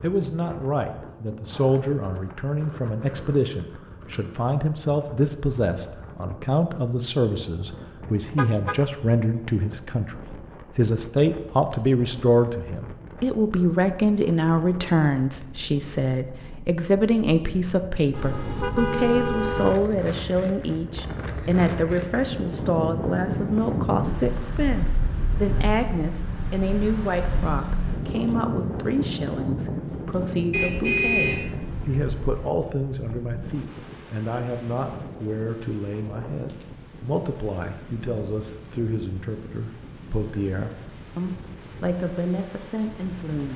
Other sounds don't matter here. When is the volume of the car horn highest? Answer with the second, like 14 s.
31 s.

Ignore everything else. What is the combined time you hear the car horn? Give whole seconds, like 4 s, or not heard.
4 s.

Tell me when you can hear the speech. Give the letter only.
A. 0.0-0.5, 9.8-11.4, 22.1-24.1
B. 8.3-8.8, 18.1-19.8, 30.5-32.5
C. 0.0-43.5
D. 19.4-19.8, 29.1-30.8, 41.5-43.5
C.